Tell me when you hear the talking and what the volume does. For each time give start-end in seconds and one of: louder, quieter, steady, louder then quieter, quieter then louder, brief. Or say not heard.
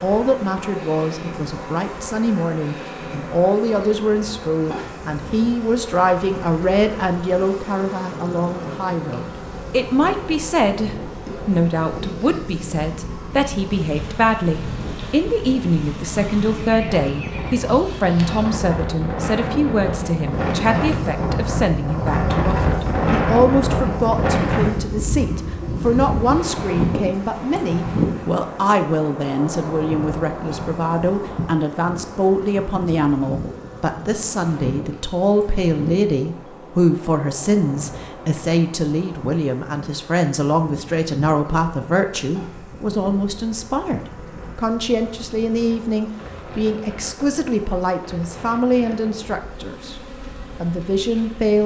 0.0-50.0 steady
50.6-51.6 brief.